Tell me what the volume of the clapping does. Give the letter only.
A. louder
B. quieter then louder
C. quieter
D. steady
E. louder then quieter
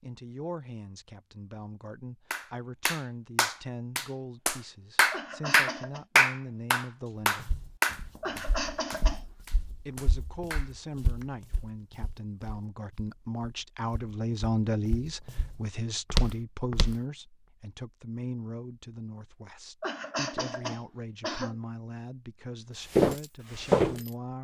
E.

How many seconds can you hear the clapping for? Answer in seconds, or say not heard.
9 s.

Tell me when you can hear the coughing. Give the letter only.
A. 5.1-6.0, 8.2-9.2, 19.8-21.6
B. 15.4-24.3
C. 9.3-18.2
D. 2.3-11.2
A.